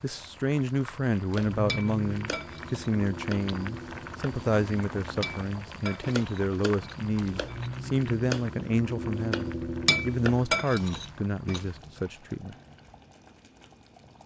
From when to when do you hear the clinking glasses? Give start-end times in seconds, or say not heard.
1.6-2.9, 5.2-7.7, 9.8-11.7.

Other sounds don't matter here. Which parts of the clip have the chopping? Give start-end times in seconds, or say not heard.
1.2-10.6.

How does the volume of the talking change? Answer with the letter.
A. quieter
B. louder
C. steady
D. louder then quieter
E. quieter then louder
C.